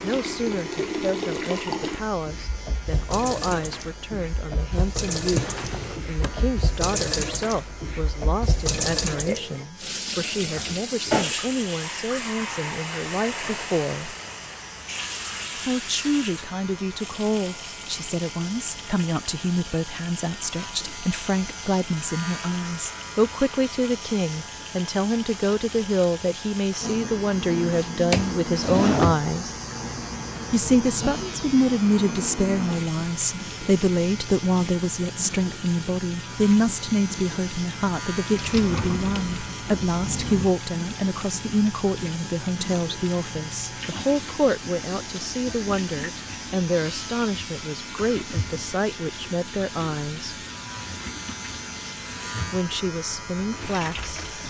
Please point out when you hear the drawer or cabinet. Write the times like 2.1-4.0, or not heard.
5.2-6.5, 28.1-29.2, 38.4-40.5.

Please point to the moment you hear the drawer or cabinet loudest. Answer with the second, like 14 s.
29 s.